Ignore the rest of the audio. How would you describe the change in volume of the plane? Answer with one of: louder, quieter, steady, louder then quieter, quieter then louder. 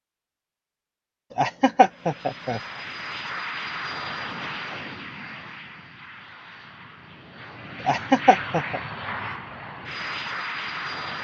quieter then louder.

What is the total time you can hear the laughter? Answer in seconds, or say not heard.
2 s.